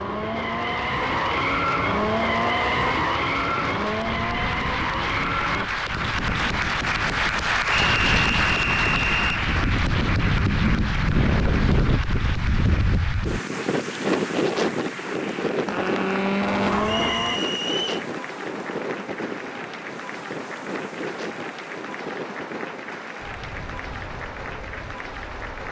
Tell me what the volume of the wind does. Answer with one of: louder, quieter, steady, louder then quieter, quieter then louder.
louder then quieter.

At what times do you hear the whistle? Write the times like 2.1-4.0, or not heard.
7.8-9.4, 16.9-18.0.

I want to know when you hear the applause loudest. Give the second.
8 s.